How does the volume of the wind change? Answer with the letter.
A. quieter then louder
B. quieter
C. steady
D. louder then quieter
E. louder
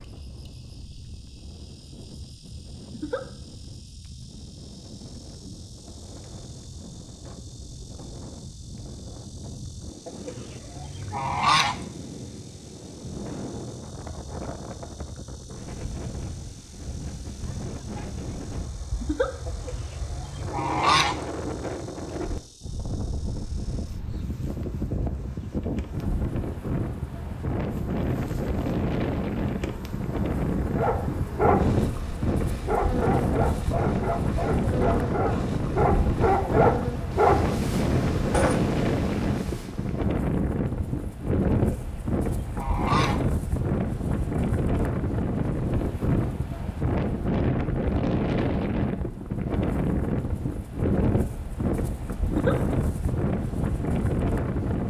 E.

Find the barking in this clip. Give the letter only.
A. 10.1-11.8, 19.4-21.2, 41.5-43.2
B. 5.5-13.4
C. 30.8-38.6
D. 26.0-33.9
C.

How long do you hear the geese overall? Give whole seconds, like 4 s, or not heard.
5 s.